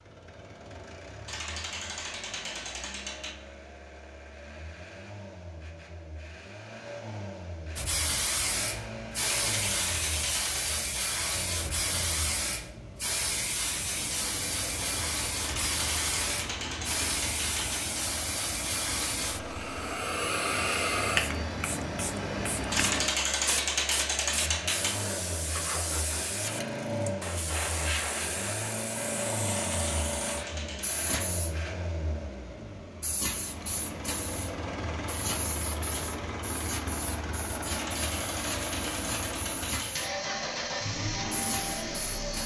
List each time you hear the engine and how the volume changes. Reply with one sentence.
The engine can be heard from 0.0 to 42.4 s, getting louder.